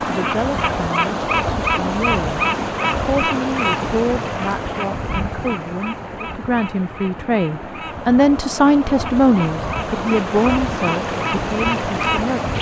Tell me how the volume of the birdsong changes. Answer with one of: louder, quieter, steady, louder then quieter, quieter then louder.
quieter then louder.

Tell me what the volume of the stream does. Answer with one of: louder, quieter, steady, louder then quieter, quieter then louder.
quieter then louder.